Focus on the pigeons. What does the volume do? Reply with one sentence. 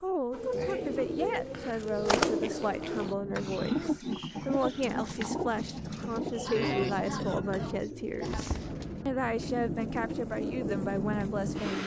The loudness of the pigeons goes down.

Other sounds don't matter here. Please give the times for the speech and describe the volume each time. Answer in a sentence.
The speech can be heard from 0.0 to 11.8 s, at a steady volume.